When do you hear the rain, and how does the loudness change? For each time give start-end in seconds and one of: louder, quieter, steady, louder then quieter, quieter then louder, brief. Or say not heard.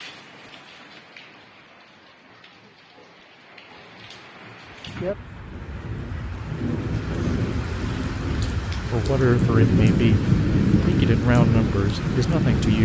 0.0-12.8 louder.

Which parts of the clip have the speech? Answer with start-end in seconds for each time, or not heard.
8.9-12.8.